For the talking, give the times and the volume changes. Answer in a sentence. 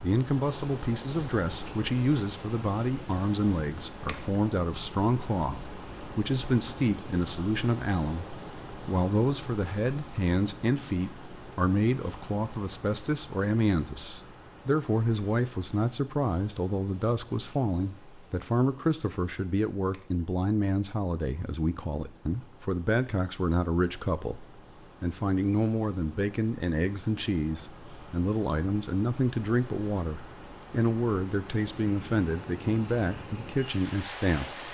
The talking can be heard from 0.0 to 34.6 s, at a steady volume.